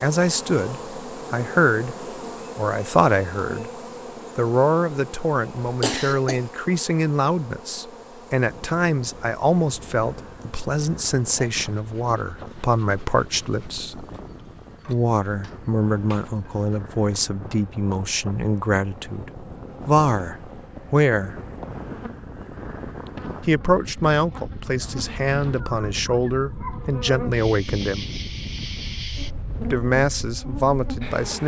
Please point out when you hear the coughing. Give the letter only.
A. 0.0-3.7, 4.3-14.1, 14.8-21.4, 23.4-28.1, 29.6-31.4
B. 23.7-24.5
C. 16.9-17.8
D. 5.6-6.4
D.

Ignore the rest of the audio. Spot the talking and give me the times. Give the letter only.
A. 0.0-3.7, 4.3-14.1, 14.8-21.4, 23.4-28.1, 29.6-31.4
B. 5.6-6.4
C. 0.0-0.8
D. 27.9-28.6
A.